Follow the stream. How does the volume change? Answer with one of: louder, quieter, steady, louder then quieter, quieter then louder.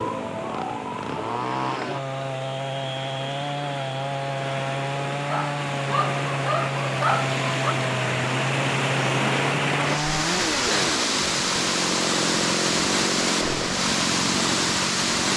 louder.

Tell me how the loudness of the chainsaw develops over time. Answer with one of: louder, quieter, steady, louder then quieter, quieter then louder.
steady.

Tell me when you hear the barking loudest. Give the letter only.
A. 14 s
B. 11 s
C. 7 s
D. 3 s
C.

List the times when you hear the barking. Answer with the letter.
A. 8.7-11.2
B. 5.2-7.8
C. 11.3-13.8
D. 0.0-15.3
B.